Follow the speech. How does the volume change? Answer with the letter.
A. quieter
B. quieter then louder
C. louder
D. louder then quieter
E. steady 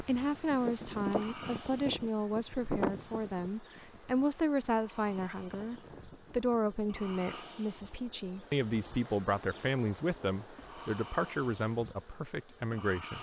E.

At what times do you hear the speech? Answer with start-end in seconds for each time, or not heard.
0.0-13.1.